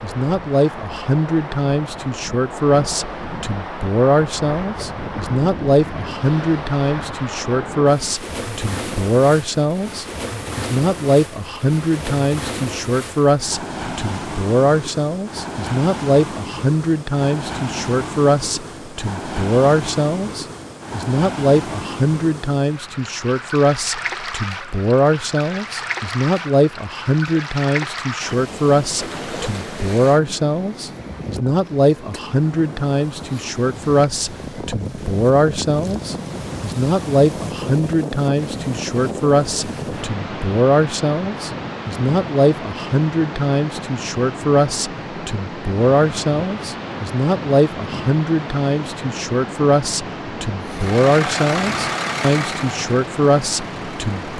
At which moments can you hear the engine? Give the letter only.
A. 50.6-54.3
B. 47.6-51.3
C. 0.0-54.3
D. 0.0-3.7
A.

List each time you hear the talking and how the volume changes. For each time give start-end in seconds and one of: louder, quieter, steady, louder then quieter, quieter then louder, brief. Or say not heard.
0.0-54.3 steady.